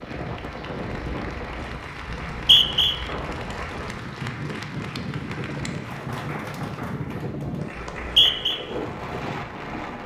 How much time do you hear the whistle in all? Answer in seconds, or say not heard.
2 s.